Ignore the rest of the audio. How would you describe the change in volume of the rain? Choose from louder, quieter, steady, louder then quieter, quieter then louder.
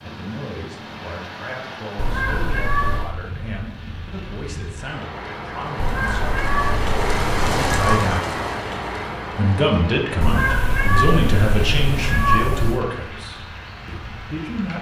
louder then quieter.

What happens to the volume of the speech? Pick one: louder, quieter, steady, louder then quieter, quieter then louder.
louder then quieter.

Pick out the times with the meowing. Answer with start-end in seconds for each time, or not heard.
1.9-3.1, 5.8-8.1, 10.2-12.8.